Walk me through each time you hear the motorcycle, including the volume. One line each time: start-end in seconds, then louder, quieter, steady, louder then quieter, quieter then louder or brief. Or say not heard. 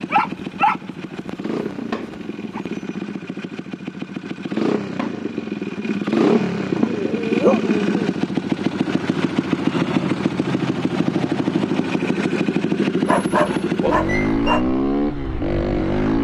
0.0-16.1 louder.